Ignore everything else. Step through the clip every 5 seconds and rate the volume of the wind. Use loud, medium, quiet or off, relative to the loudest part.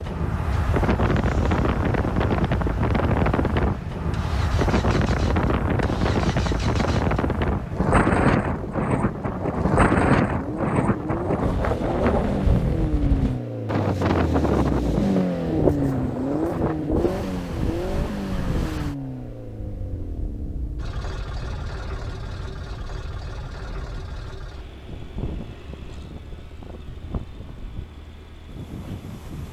loud, loud, loud, medium, quiet, quiet.